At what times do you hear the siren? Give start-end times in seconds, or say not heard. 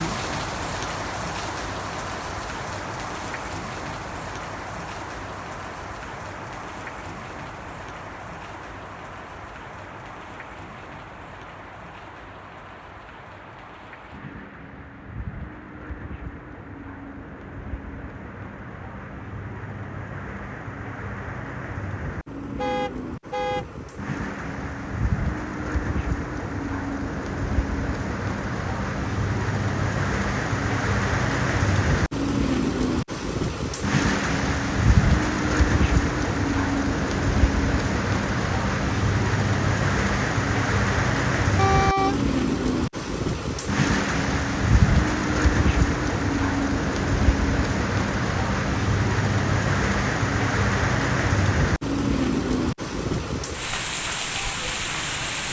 not heard.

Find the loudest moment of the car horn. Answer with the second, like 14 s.
42 s.